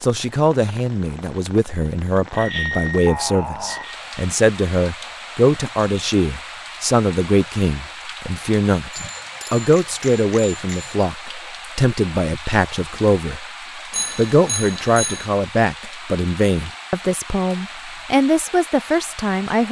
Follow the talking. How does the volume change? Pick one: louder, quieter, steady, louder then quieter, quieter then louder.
steady.